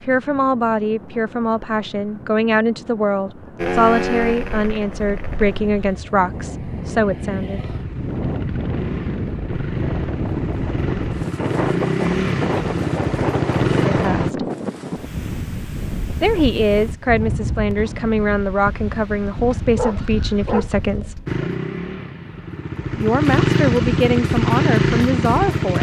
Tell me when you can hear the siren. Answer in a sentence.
You can't hear the siren here.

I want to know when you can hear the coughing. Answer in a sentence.
The coughing can't be heard in this clip.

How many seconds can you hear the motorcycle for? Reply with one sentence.
You can hear the motorcycle for 15 seconds altogether.